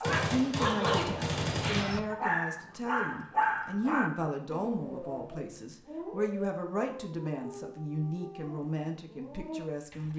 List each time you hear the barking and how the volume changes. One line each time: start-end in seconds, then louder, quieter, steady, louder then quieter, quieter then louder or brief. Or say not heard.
0.0-10.1 quieter.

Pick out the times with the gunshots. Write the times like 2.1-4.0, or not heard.
0.0-1.9.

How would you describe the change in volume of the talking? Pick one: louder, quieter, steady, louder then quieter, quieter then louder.
steady.